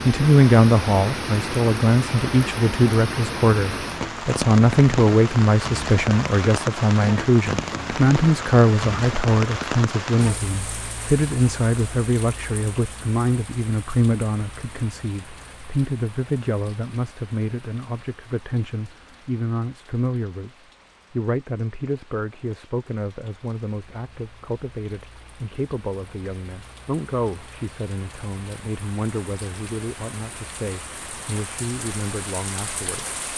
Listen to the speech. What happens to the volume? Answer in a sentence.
The loudness of the speech goes down.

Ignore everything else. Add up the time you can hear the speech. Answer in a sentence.
The speech can be heard for 33 seconds in total.